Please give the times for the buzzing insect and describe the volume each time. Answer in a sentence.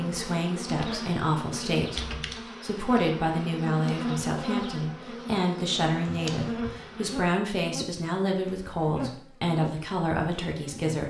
You can hear the buzzing insect from 0.0 to 11.0 s, at a steady volume.